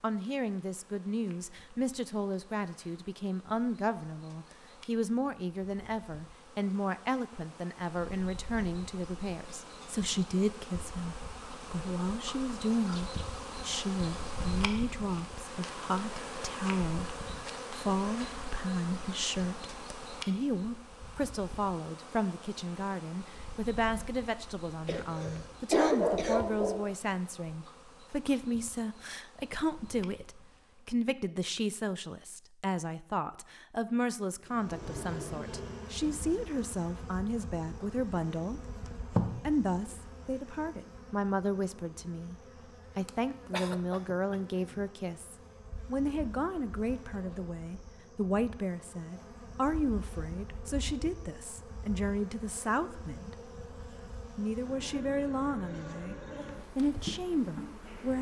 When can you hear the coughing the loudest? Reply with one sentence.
The volume of the coughing peaks at 26 seconds.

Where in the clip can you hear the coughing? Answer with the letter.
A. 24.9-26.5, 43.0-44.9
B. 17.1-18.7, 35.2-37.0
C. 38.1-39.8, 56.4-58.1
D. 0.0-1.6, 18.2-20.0
A.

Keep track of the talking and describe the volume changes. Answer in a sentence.
The volume of the talking stays about the same.